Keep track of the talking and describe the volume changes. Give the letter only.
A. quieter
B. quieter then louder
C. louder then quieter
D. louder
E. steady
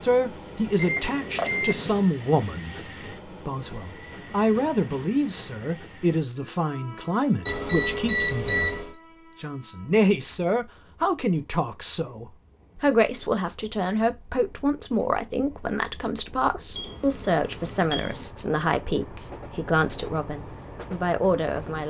E.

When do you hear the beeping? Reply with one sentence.
You can hear the beeping from 0.8 to 2.0 s, from 7.5 to 8.9 s and from 16.7 to 18.2 s.